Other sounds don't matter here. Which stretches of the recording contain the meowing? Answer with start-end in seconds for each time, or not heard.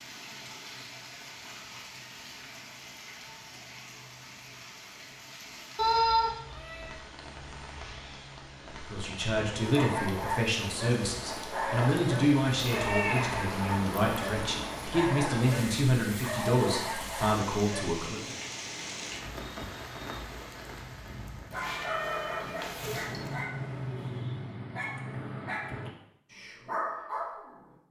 5.8-7.0, 12.7-14.7, 21.5-23.4.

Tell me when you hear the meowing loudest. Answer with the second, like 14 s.
6 s.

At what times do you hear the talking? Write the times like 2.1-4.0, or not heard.
8.8-18.2.